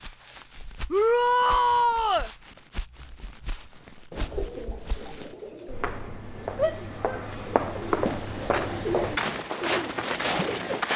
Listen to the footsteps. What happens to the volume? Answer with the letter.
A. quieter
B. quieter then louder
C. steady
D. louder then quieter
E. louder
E.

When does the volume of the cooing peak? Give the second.
9 s.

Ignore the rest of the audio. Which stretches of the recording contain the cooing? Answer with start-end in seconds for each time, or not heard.
4.1-10.8.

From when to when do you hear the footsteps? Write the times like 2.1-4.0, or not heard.
0.0-10.9.